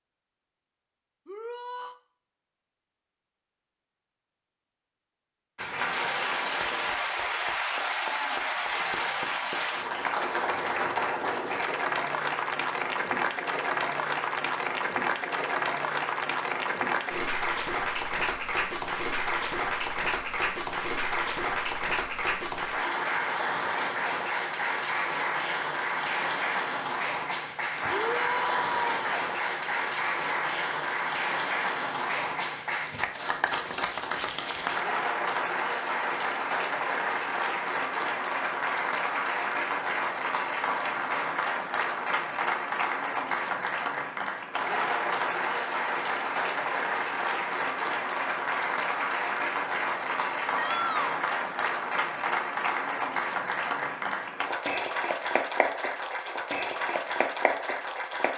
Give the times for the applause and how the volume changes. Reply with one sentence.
You can hear the applause from 5.5 to 58.3 s, at a steady volume.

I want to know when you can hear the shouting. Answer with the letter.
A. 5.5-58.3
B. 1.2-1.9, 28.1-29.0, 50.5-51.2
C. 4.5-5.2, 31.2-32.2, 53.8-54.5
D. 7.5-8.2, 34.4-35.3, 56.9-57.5
B.